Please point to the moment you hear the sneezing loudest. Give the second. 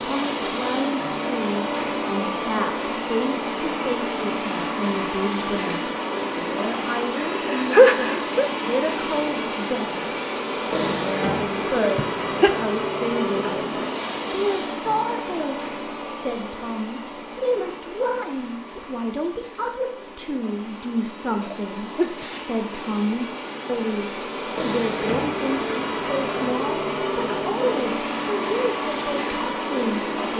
8 s.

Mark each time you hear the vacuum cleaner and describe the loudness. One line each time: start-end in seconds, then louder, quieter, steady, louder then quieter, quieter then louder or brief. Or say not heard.
0.0-30.3 quieter then louder.